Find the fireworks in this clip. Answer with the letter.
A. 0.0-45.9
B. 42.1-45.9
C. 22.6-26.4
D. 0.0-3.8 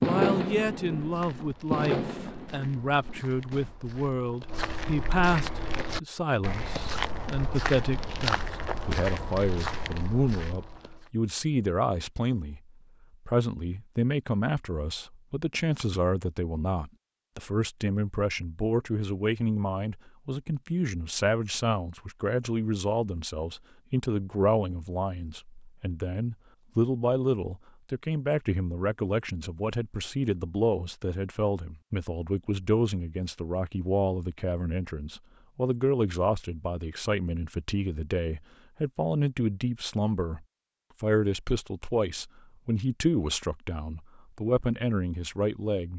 D.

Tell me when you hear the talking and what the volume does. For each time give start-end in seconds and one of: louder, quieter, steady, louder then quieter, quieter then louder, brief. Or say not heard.
0.0-45.9 steady.